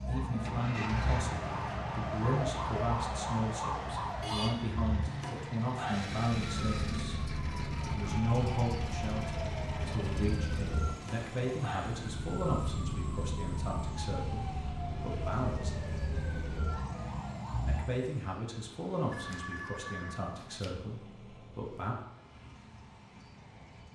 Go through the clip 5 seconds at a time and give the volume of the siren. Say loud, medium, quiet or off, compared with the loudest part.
loud, loud, loud, loud, off.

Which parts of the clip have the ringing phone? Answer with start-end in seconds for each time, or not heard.
19.1-20.8.